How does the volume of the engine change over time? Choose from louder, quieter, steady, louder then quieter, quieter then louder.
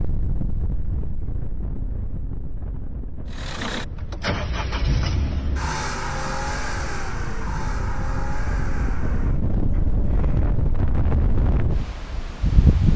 quieter.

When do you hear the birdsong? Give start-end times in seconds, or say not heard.
not heard.